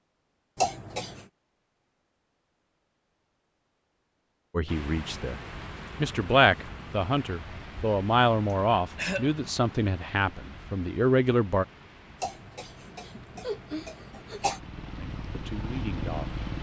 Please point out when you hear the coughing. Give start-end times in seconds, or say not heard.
0.6-1.2, 8.5-9.3, 12.2-14.6.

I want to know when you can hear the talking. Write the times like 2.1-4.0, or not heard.
4.5-11.7, 15.0-16.3.